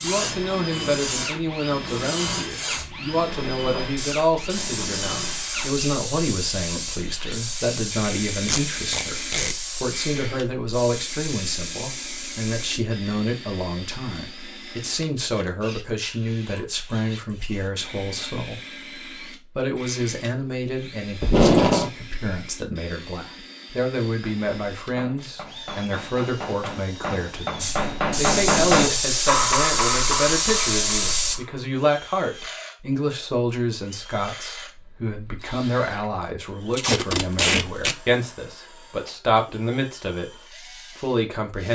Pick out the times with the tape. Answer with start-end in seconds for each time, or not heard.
8.4-9.6, 21.2-21.9, 36.7-38.0.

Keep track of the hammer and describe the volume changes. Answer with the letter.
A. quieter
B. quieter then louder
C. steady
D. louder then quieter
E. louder
D.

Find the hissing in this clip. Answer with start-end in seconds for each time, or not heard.
0.0-12.8, 27.6-31.4.